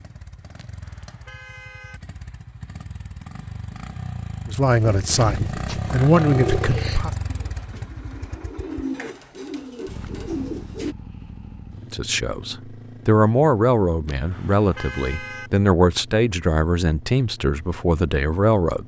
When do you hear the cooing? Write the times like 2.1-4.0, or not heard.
4.8-10.9.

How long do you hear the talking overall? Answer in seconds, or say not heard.
10 s.